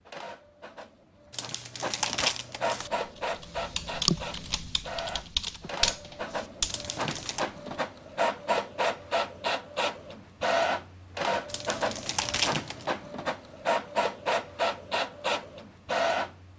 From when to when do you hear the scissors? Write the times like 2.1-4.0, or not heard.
not heard.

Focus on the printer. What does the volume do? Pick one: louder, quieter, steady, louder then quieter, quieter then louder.
louder.